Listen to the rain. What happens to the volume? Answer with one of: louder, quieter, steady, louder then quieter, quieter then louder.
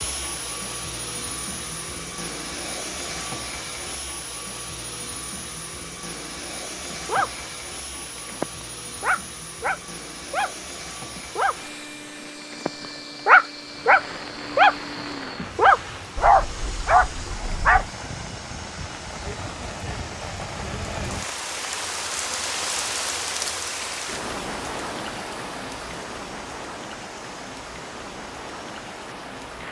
louder then quieter.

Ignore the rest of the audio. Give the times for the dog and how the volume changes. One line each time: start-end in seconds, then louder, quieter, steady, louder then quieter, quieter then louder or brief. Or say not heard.
6.9-17.9 louder.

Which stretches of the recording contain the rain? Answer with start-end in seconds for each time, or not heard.
13.6-29.6.